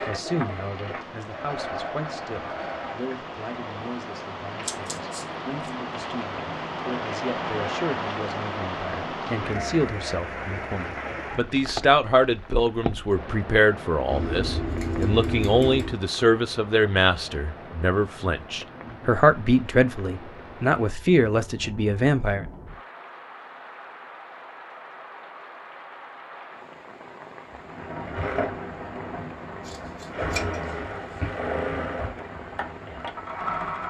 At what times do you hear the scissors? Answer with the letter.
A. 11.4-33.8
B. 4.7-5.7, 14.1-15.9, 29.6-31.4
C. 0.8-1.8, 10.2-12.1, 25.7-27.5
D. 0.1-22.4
B.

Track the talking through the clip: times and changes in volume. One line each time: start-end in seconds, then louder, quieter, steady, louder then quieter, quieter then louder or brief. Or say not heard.
0.1-22.4 louder.